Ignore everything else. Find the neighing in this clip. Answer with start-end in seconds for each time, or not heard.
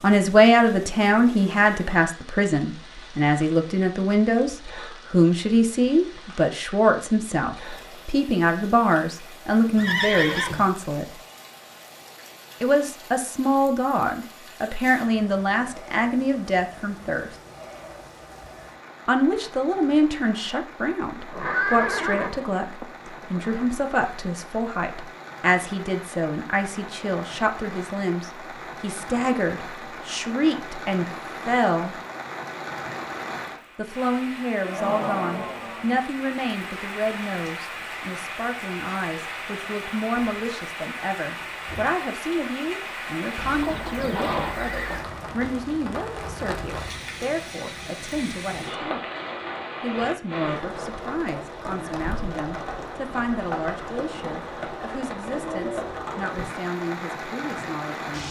9.8-10.7, 21.1-23.7, 43.4-45.0.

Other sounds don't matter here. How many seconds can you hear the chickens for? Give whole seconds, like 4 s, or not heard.
not heard.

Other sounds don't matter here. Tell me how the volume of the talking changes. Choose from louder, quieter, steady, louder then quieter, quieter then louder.
quieter.